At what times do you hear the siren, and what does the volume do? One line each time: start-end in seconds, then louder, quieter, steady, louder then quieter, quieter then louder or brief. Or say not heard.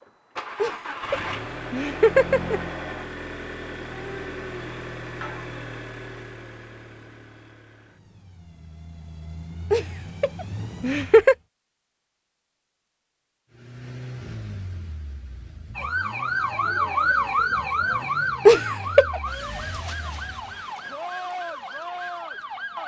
15.8-22.8 quieter.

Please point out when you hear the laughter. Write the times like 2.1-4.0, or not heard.
0.6-2.6, 9.7-11.3, 18.4-19.2.